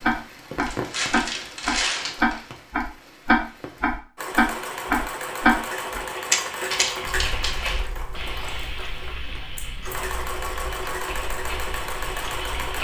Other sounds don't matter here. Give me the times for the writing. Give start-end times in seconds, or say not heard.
not heard.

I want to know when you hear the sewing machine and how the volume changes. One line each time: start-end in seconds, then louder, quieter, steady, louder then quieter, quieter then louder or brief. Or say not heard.
4.2-12.8 quieter then louder.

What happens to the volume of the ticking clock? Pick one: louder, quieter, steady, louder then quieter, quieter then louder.
quieter.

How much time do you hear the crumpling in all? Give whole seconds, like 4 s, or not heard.
3 s.